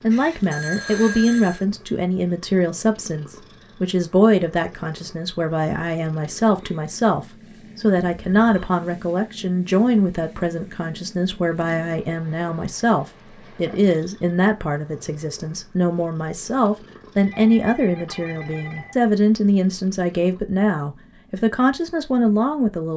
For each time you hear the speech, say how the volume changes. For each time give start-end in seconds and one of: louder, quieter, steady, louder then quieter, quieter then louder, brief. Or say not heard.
0.0-22.9 steady.